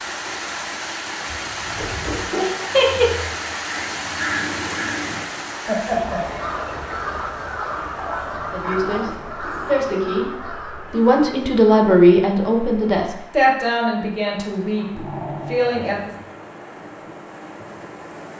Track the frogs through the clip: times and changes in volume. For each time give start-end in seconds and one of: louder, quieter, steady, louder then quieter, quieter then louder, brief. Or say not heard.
not heard.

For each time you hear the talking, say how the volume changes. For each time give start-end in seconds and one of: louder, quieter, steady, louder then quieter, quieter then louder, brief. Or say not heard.
8.5-16.1 louder then quieter.